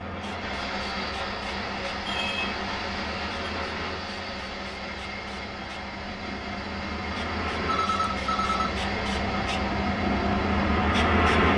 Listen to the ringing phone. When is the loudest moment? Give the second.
8 s.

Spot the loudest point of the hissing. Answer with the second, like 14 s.
11 s.